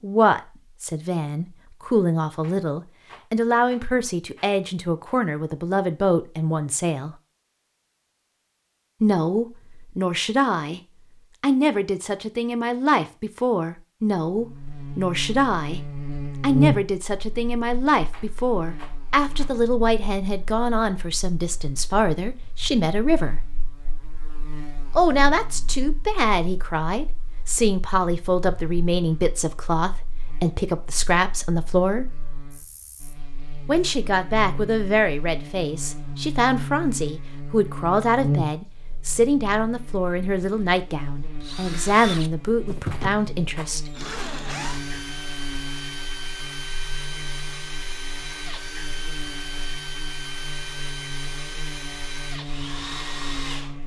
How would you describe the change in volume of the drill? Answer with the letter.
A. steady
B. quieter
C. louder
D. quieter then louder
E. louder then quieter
A.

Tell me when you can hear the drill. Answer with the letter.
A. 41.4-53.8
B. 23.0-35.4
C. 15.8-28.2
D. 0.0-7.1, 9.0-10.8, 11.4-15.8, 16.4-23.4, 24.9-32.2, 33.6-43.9
A.